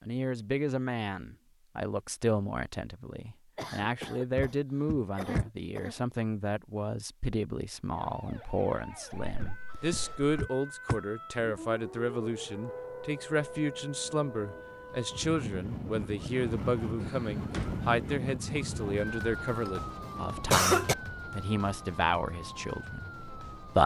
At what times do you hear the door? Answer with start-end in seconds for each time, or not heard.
4.3-5.5, 9.4-11.0, 17.0-17.9.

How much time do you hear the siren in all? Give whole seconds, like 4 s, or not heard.
16 s.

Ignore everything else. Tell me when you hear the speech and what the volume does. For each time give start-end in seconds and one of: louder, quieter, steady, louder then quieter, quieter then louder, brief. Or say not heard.
0.0-23.8 steady.